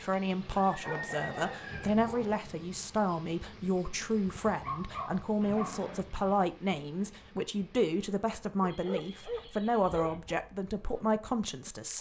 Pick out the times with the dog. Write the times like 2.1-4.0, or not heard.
0.8-2.4, 4.3-5.8, 8.7-10.2.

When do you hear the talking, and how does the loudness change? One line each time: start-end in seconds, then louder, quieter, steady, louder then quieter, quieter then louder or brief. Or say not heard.
0.0-11.9 steady.